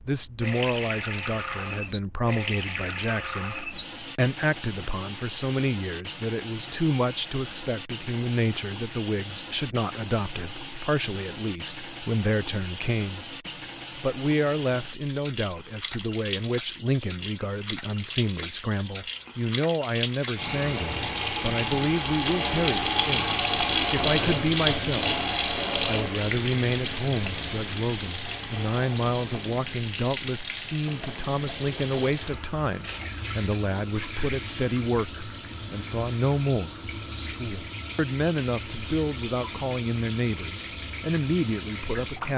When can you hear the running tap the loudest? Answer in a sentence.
The volume of the running tap peaks at 24 seconds.